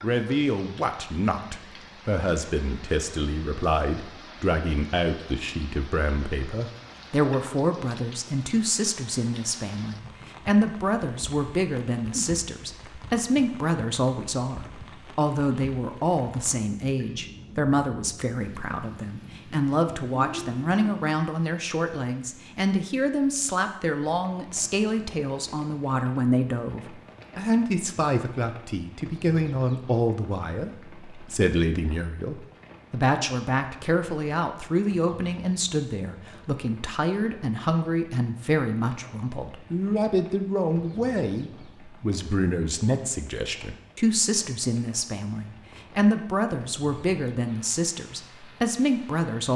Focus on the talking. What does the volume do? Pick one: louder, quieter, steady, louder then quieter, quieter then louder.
steady.